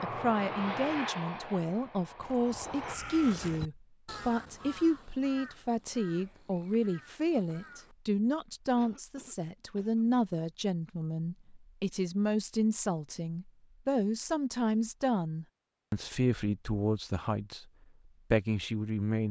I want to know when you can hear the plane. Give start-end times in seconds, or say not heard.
0.0-3.0.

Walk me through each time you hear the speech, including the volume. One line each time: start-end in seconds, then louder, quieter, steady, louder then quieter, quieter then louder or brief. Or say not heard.
0.0-17.6 steady
18.3-19.2 brief.